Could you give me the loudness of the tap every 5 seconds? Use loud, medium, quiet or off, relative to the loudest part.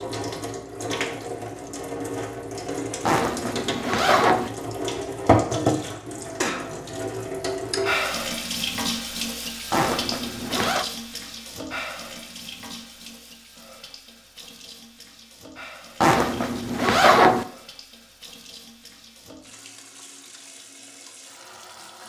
medium, loud, medium, quiet, quiet.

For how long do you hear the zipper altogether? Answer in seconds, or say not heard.
4 s.